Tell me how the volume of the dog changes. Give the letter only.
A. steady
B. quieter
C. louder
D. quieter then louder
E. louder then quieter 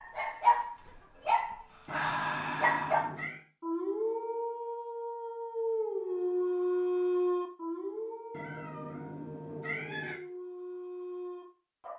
B.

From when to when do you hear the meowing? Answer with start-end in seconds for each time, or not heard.
1.9-3.4, 8.3-10.2.